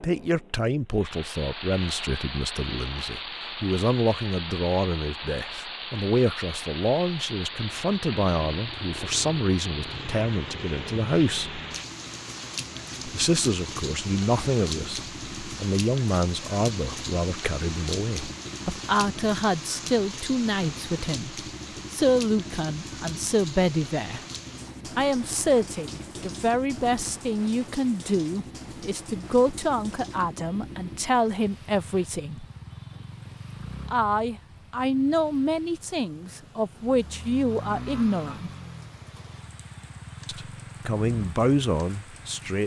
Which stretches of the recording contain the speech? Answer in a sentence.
The speech can be heard from 0.0 to 11.6 s, from 13.1 to 24.2 s, from 24.9 to 32.5 s, from 33.9 to 38.5 s and from 40.2 to 42.6 s.